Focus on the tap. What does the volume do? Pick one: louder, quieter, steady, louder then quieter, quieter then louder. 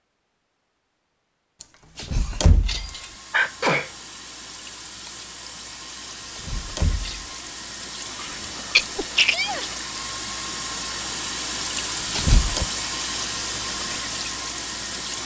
louder.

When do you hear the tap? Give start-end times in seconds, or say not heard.
2.6-15.2.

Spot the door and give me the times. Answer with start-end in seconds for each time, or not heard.
1.9-3.0, 6.3-7.3, 11.8-12.7.